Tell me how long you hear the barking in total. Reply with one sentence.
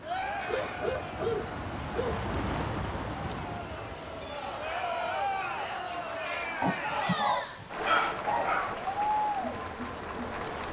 You can hear the barking for 4 seconds altogether.